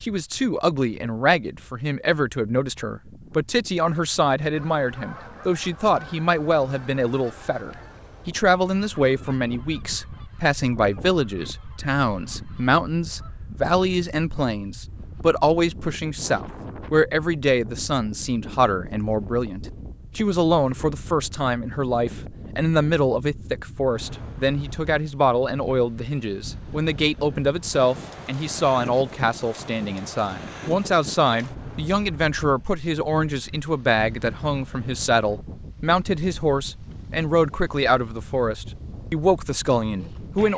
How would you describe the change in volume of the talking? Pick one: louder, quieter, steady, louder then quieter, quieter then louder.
steady.